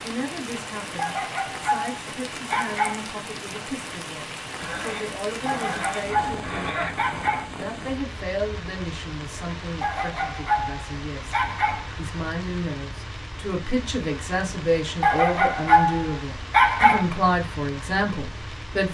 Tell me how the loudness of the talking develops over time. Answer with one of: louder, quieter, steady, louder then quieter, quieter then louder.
louder.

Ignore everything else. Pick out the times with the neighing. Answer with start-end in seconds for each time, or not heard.
4.5-7.0.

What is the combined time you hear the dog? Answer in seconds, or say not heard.
8 s.